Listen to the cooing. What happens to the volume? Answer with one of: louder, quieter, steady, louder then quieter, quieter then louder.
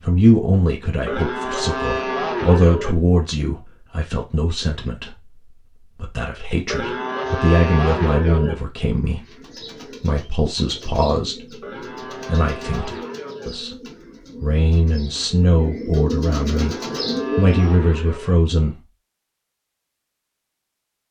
louder.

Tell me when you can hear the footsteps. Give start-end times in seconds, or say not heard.
not heard.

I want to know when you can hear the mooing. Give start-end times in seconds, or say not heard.
1.1-3.0, 6.7-8.6, 11.6-13.5, 16.4-18.4.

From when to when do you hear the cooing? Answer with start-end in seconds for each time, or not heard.
9.1-17.8.